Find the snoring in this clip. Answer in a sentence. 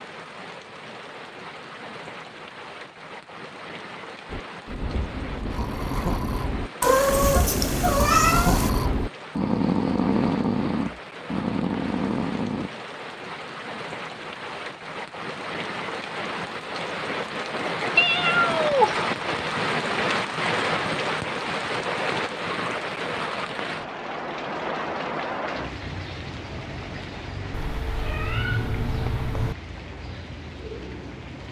The snoring can be heard from 4.2 to 12.7 s.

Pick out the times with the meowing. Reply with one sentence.
The meowing can be heard from 6.8 to 8.7 s, from 17.9 to 19.0 s and from 27.5 to 29.6 s.